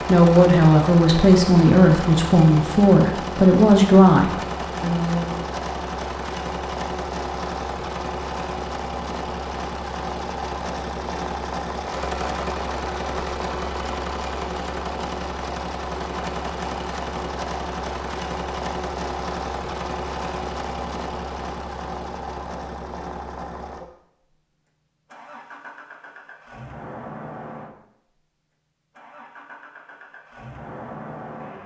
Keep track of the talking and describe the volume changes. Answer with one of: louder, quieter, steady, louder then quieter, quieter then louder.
steady.